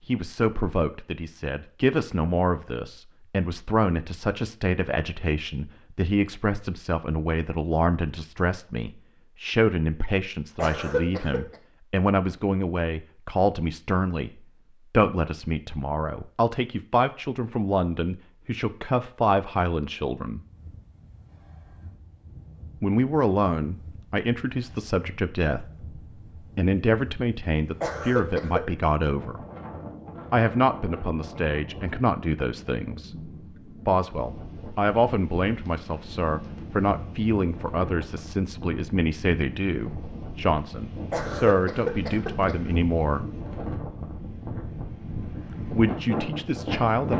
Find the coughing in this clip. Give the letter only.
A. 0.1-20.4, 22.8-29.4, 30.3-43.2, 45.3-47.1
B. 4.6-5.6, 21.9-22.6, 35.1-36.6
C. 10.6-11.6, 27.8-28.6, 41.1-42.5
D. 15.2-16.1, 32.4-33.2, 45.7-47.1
C.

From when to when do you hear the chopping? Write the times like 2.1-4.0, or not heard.
not heard.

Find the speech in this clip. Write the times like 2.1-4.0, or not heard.
0.1-20.4, 22.8-29.4, 30.3-43.2, 45.3-47.1.